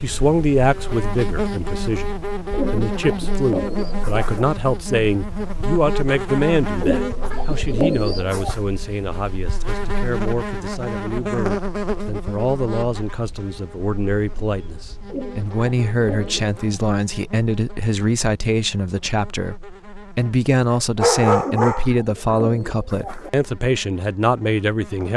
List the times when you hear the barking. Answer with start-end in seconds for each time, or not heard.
20.9-22.4.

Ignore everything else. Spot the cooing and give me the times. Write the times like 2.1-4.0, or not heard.
2.5-4.5, 6.8-8.6, 15.1-16.8, 21.4-23.3.